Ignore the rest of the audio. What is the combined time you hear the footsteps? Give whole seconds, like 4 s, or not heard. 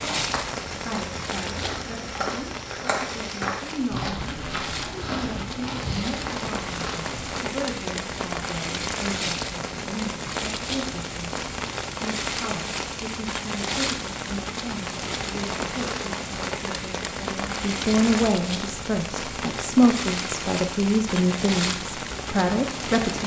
7 s.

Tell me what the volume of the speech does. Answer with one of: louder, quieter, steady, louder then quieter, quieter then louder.
louder.